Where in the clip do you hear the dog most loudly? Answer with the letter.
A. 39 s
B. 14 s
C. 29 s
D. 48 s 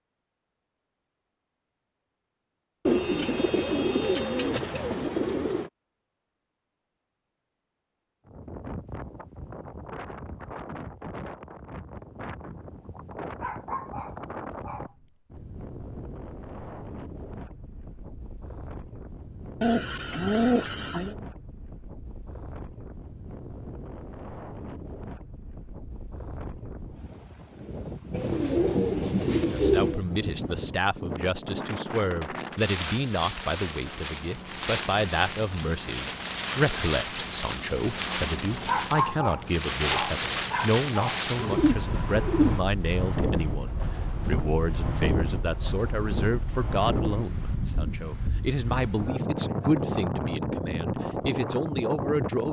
A.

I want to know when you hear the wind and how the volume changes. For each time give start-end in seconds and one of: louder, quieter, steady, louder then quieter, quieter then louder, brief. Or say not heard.
8.2-52.4 louder.